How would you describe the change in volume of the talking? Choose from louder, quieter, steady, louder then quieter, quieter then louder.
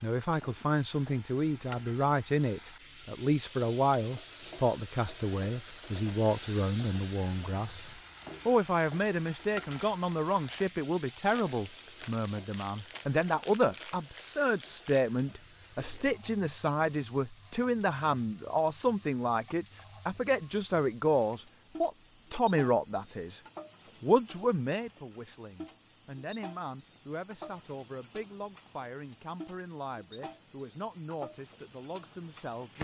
quieter.